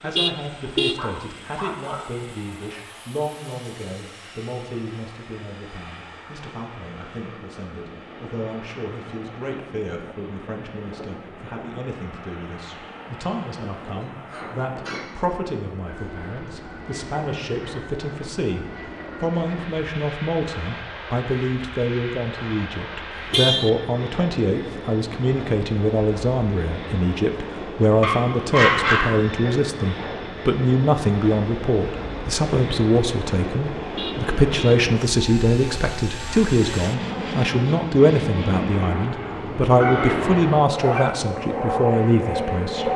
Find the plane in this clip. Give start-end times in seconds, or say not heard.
0.0-42.9.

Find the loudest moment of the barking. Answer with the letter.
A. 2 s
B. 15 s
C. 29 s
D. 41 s
C.